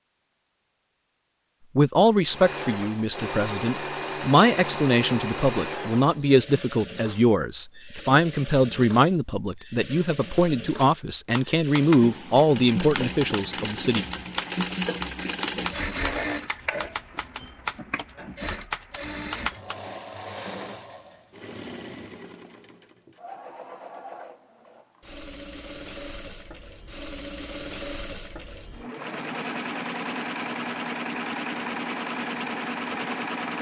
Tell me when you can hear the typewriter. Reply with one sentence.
You can hear the typewriter from 10.3 to 19.8 s.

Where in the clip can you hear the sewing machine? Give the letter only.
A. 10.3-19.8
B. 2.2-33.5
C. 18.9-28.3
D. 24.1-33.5
B.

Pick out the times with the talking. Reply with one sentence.
You can hear the talking from 1.8 to 14.1 s.